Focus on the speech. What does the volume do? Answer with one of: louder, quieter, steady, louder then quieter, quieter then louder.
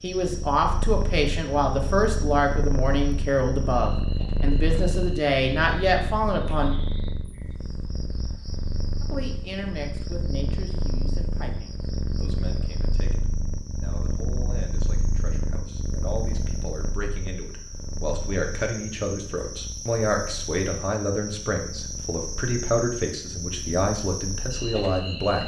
quieter then louder.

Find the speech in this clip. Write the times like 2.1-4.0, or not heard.
0.0-6.8, 9.0-25.4.